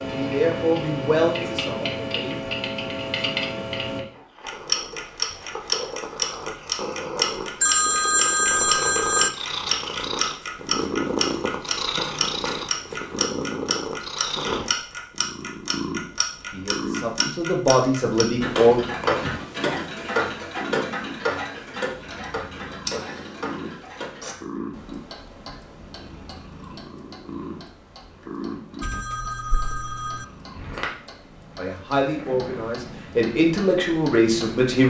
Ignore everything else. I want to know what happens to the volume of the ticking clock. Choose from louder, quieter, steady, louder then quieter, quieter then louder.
quieter.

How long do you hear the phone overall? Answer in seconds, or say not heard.
3 s.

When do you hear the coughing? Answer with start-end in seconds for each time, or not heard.
not heard.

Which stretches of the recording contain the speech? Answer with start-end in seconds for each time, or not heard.
0.0-2.5, 16.5-18.8, 31.6-34.8.